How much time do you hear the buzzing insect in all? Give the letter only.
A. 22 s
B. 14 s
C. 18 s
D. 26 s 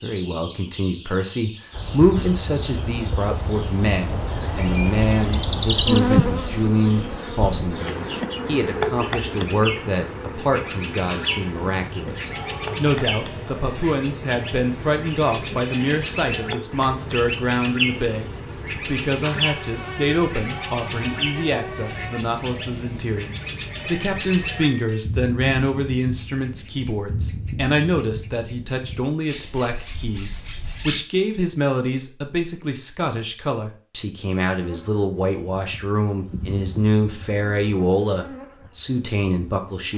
D.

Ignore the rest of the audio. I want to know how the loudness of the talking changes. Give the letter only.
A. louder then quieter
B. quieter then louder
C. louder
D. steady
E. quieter
D.